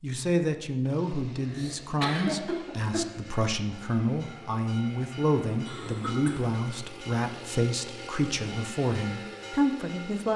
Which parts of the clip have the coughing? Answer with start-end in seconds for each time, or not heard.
1.4-3.0, 5.7-6.5.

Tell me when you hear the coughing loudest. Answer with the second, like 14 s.
2 s.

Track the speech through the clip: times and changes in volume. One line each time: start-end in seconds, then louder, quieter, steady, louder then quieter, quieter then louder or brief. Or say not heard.
0.0-10.3 steady.